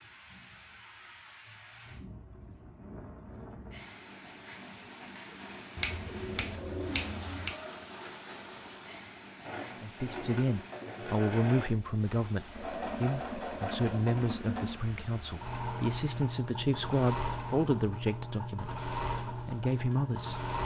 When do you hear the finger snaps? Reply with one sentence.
You can hear the finger snaps from 5.8 to 7.5 s.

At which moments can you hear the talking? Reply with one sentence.
You can hear the talking from 9.8 to 20.6 s.